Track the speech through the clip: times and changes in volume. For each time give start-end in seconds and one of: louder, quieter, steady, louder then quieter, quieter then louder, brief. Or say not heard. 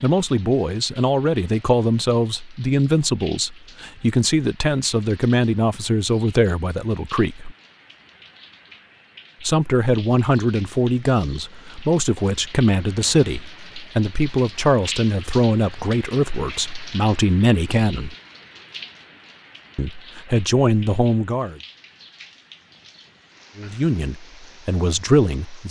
0.0-7.5 steady
9.4-18.1 steady
19.8-21.6 brief
23.6-25.6 brief.